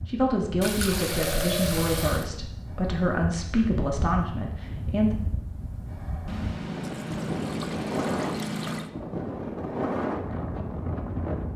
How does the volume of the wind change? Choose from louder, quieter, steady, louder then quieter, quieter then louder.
louder.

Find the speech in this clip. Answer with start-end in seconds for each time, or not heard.
0.1-5.2.